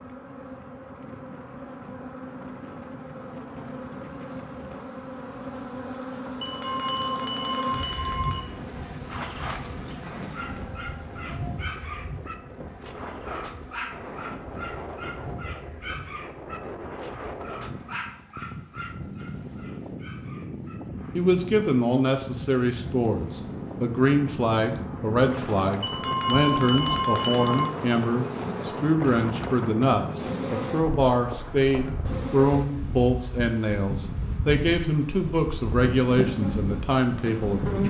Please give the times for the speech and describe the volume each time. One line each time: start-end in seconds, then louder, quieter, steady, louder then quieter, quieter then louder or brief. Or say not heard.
21.1-37.8 steady.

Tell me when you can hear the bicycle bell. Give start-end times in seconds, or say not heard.
6.4-8.4, 25.8-27.7.